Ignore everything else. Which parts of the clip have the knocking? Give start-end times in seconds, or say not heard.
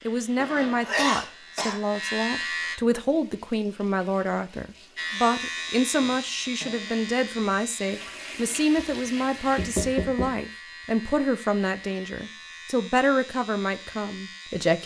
8.8-10.4.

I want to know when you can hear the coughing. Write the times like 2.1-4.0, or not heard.
0.3-1.8.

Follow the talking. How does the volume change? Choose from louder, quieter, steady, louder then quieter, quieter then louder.
steady.